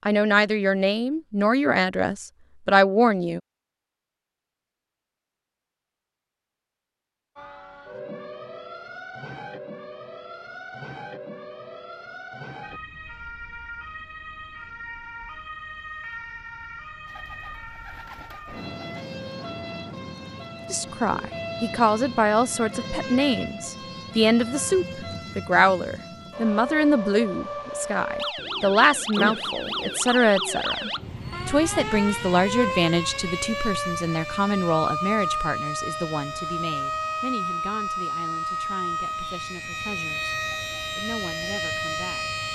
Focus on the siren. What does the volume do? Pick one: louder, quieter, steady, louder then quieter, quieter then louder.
louder.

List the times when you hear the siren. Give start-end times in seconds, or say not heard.
7.3-42.4.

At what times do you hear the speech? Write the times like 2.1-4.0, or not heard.
0.1-3.4, 20.7-42.4.